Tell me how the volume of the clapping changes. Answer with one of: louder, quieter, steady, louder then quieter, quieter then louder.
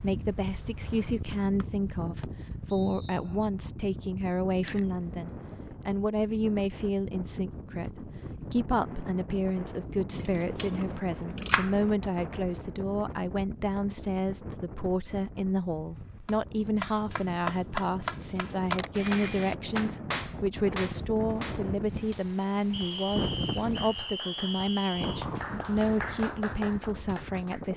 quieter then louder.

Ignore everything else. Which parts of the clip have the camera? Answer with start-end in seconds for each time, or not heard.
4.7-5.2, 10.2-11.8, 18.7-19.7.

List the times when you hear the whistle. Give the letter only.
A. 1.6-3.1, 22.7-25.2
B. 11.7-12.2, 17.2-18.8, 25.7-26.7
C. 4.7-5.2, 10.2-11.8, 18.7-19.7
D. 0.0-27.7
A.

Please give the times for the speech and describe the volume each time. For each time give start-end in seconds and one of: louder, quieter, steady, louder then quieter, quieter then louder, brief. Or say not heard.
0.0-27.7 steady.